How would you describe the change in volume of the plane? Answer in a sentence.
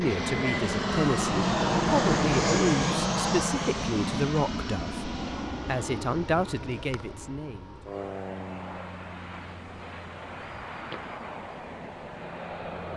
The loudness of the plane goes down.